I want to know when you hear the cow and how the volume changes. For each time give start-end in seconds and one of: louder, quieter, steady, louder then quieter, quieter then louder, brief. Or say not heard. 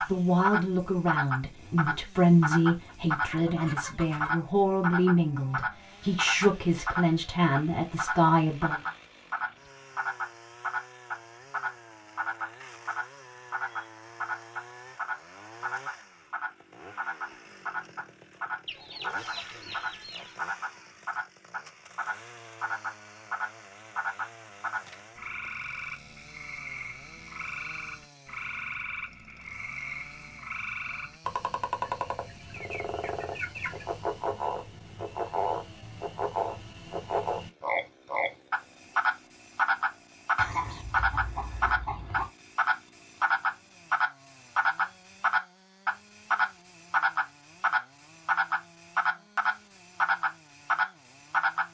not heard.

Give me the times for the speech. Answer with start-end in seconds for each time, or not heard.
0.1-8.8.